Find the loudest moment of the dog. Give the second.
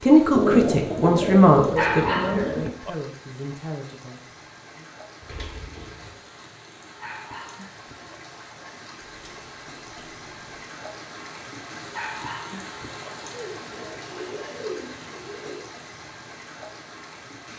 2 s.